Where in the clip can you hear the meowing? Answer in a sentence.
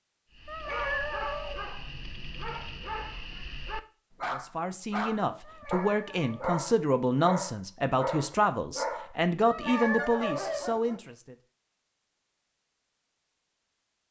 You can hear the meowing from 0.5 to 1.6 s, from 5.4 to 6.5 s and from 9.4 to 10.8 s.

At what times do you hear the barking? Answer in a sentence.
The barking can be heard from 0.3 to 11.0 s.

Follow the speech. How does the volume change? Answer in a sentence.
The volume of the speech stays about the same.